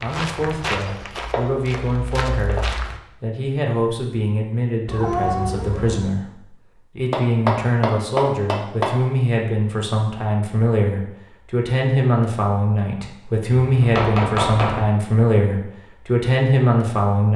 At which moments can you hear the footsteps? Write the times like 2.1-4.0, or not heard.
0.0-3.0.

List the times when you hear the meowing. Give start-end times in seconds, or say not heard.
4.8-6.2.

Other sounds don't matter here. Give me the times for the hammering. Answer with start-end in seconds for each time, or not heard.
0.8-2.7, 7.1-8.9, 13.6-14.8.